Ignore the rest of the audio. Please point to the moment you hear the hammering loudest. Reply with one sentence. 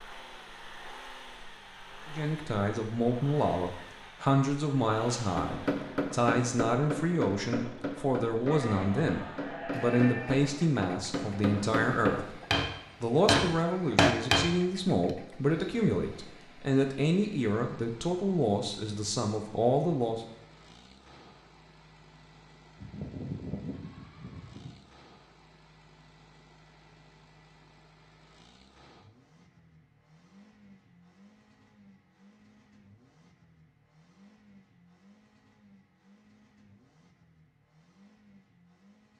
The volume of the hammering peaks at 14 seconds.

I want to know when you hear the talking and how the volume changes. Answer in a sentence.
You can hear the talking from 2.0 to 12.4 s, at a steady volume; and from 13.0 to 20.2 s, at a steady volume.